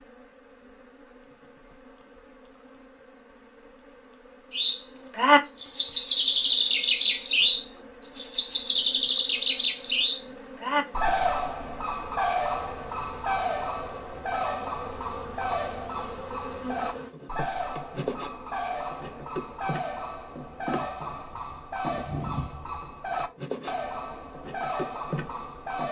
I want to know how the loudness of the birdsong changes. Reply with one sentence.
The volume of the birdsong goes down.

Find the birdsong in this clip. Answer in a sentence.
You can hear the birdsong from 4.5 to 25.8 s.